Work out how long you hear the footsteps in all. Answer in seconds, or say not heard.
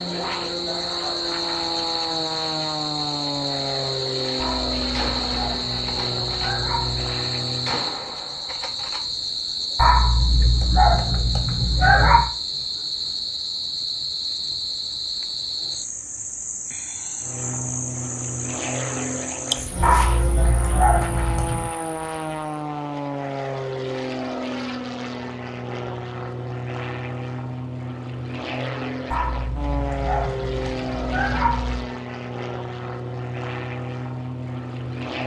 not heard.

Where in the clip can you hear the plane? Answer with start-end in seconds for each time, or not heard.
0.0-7.8, 17.2-35.2.